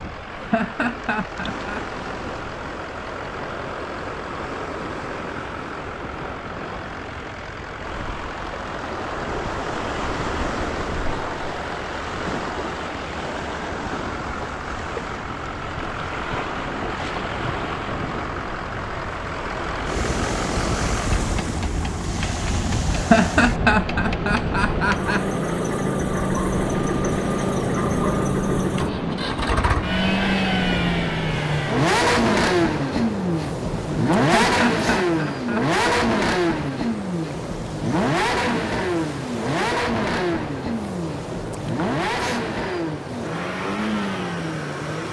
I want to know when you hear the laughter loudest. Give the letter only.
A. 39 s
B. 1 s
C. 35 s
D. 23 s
D.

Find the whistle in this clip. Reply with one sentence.
The whistle can't be heard in this clip.